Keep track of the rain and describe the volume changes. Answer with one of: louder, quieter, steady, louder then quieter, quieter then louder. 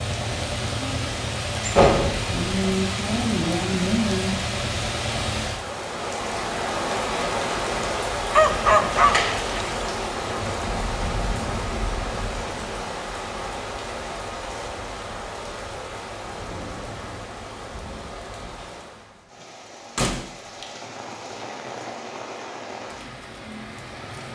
quieter.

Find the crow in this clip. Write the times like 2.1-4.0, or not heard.
not heard.